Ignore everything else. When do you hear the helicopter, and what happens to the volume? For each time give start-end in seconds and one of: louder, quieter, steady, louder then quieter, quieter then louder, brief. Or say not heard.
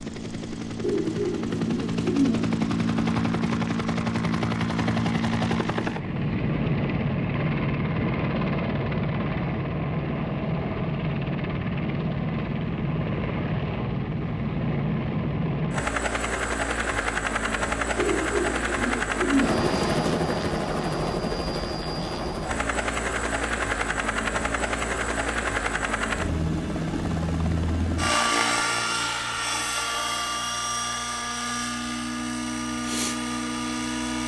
0.0-34.2 steady.